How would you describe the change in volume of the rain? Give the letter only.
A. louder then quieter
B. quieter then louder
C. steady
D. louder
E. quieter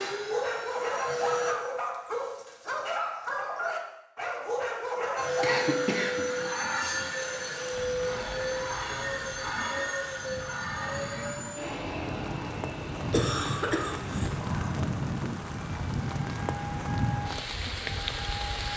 D.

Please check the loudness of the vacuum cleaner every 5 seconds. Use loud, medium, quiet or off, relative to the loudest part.
loud, loud, medium, medium.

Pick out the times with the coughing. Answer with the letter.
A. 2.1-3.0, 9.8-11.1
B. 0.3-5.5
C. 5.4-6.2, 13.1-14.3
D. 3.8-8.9
C.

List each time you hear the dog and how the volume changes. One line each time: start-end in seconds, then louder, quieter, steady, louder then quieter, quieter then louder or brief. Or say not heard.
0.3-5.5 steady.